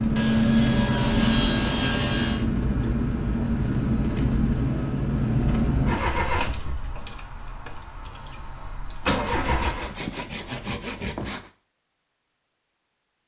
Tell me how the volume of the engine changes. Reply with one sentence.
The loudness of the engine goes down.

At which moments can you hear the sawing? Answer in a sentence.
The sawing can be heard from 0.1 to 2.5 s and from 9.2 to 11.5 s.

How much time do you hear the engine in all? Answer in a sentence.
You can hear the engine for 10 seconds altogether.